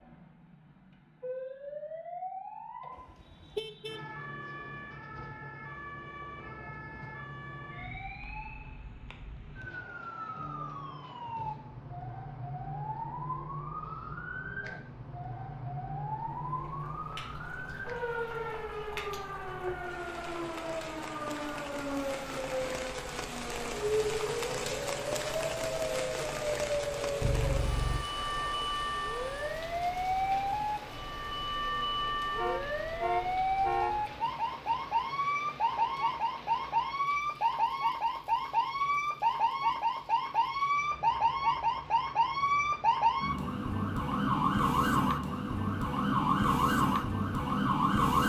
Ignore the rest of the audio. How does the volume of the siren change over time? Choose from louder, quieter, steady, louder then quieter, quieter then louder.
louder.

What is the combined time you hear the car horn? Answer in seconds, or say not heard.
4 s.